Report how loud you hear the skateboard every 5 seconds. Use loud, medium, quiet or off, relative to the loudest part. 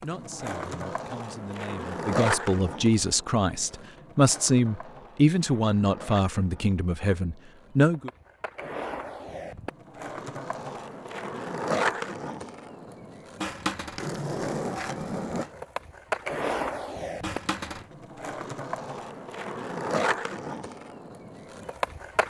loud, medium, loud, loud, loud.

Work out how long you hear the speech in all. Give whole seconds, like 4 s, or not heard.
8 s.